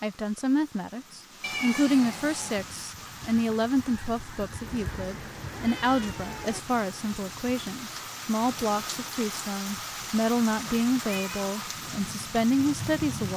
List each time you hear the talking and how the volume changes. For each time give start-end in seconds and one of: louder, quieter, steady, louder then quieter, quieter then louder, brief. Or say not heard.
0.0-13.3 steady.